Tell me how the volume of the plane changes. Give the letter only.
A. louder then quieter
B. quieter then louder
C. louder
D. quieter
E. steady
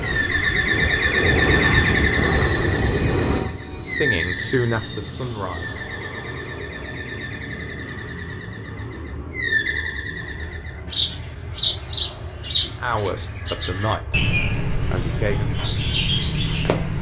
D.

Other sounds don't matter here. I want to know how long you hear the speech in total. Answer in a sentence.
The speech can be heard for 5 seconds in total.